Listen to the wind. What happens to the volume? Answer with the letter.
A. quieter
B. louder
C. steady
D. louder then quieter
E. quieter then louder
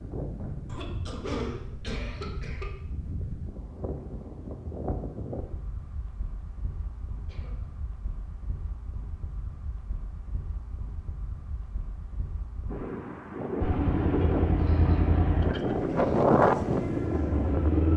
E.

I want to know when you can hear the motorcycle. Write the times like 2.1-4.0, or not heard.
13.6-17.9.